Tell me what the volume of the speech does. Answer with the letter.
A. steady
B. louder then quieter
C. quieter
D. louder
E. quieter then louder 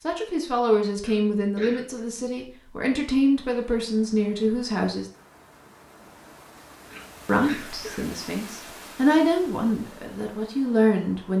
A.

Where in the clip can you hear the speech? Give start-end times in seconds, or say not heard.
0.0-5.0, 7.2-11.3.